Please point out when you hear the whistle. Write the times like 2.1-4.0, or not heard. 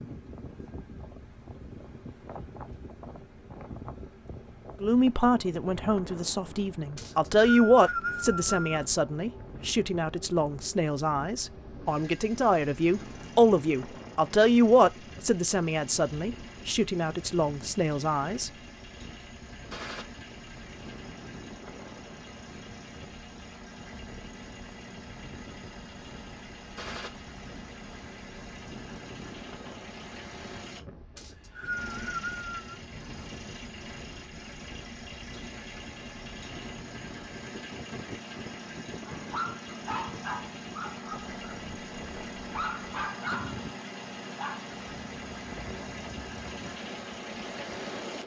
7.0-8.8, 31.1-32.8.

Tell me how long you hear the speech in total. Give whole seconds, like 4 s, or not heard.
14 s.